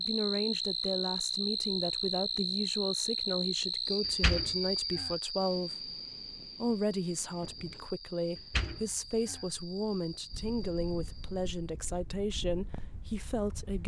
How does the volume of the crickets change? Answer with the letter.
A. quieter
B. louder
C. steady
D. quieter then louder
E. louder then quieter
A.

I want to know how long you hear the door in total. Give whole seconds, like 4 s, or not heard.
2 s.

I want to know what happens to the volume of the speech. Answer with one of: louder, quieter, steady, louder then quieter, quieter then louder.
steady.